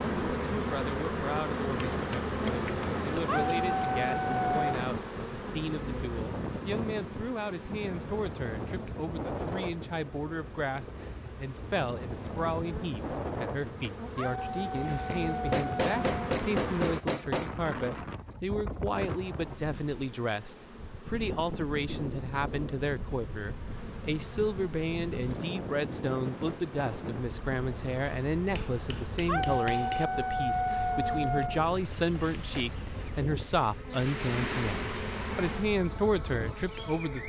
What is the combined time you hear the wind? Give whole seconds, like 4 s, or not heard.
37 s.